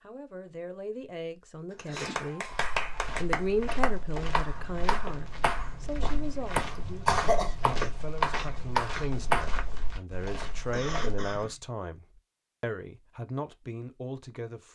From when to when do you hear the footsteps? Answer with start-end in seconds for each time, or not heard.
2.4-11.3.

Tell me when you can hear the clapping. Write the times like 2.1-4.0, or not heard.
1.9-9.4.